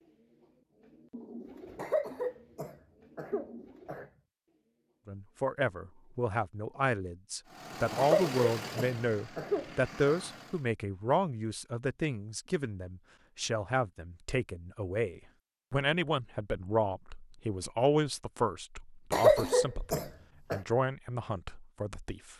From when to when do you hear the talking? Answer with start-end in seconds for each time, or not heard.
5.0-22.3.